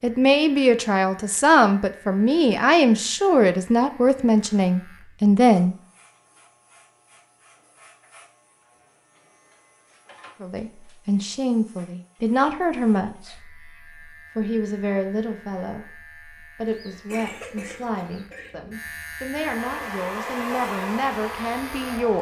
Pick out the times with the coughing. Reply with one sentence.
The coughing can be heard from 16.6 to 18.6 s.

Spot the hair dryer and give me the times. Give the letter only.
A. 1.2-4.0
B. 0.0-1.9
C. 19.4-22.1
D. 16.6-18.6
C.